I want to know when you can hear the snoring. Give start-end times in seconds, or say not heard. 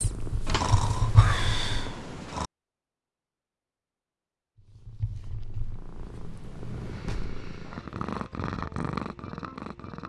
0.5-2.5.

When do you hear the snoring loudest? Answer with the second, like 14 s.
1 s.